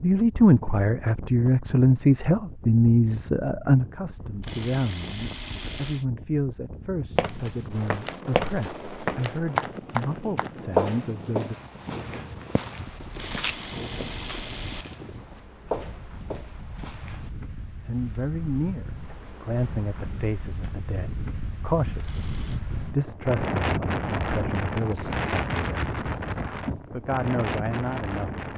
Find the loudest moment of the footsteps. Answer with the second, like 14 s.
11 s.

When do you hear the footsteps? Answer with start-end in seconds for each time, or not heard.
7.2-17.3.